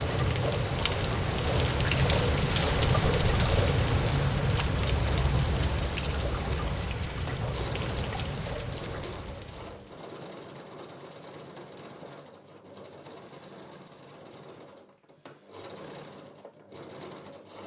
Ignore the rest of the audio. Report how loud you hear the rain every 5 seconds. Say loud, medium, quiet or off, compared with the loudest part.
loud, medium, off, off.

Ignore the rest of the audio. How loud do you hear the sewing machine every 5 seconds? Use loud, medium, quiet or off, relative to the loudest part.
loud, loud, medium, medium.